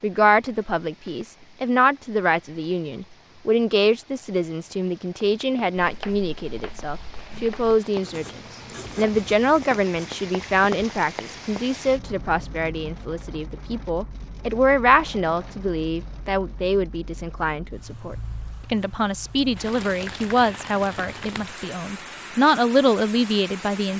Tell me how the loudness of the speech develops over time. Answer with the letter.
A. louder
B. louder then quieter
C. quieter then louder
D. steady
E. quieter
D.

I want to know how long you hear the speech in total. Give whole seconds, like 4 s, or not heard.
24 s.